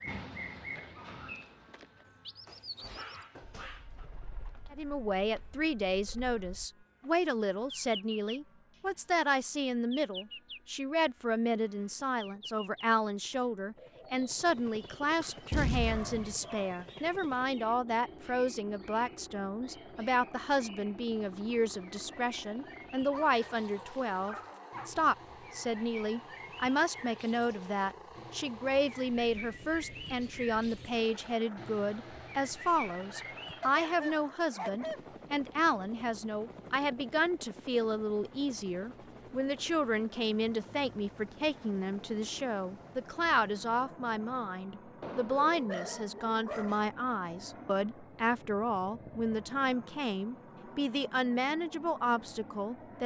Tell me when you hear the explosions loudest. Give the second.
16 s.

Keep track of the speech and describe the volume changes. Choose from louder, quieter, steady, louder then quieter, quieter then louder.
steady.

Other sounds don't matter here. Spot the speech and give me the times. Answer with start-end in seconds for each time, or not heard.
4.7-53.0.